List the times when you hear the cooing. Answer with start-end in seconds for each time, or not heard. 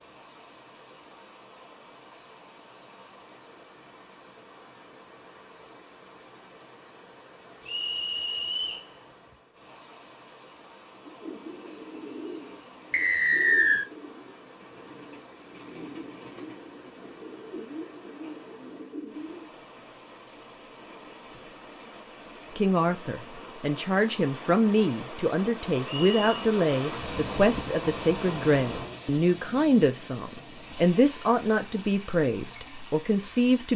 10.9-19.5.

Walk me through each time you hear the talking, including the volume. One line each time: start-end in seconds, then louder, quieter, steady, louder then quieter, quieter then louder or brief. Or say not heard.
22.6-33.7 steady.